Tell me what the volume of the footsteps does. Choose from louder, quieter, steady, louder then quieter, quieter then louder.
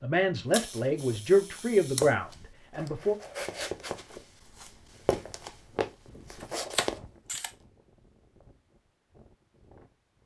quieter then louder.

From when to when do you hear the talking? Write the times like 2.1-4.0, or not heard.
0.0-3.1.